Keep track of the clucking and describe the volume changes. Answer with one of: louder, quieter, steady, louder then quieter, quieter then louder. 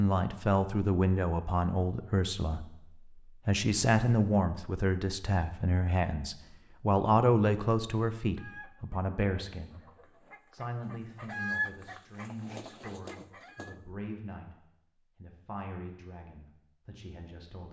louder then quieter.